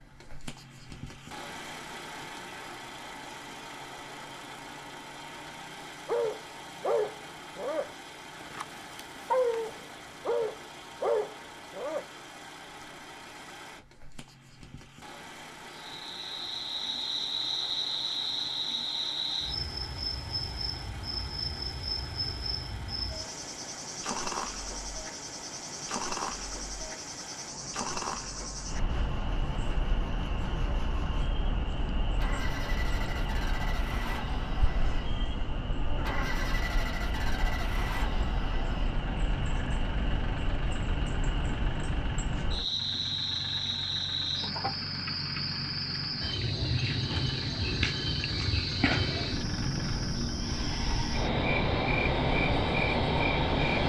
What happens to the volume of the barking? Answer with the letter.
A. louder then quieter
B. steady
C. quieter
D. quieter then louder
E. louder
D.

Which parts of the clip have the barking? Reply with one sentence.
You can hear the barking from 6.0 to 12.1 s.